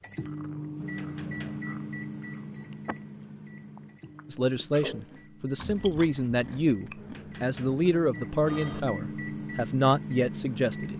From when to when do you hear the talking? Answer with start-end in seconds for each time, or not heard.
4.3-10.9.